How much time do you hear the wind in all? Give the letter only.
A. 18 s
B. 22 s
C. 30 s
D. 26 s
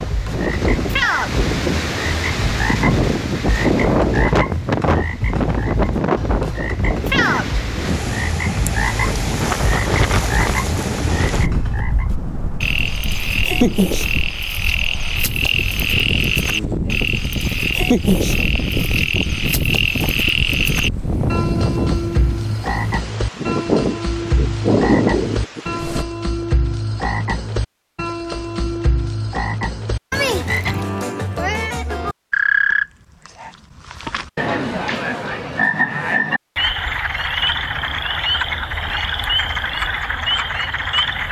D.